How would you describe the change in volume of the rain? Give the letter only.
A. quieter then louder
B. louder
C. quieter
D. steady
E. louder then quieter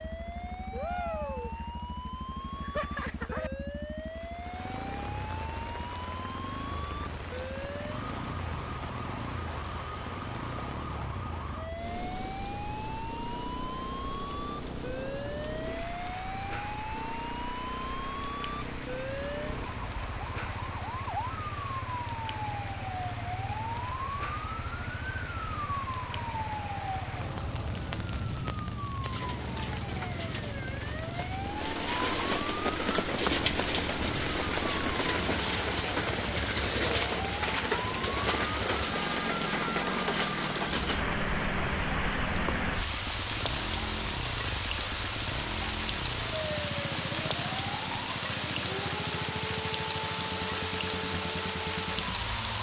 B.